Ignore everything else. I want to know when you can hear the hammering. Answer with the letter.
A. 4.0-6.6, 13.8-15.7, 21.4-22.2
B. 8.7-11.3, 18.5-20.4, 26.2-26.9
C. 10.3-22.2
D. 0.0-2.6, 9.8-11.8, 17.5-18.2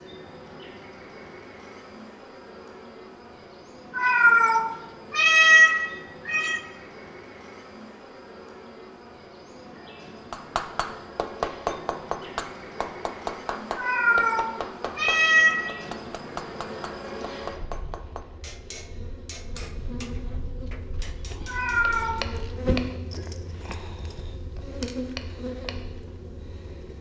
C.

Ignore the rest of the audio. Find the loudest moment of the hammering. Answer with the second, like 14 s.
12 s.